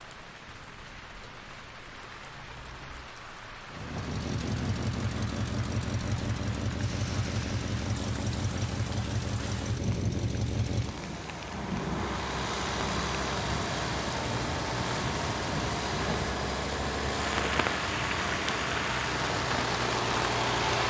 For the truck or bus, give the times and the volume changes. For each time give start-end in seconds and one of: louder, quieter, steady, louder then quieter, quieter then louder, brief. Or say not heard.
0.1-20.8 louder.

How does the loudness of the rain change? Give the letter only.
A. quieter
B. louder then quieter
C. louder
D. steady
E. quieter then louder
C.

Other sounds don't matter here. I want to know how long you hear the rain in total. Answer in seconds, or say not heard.
21 s.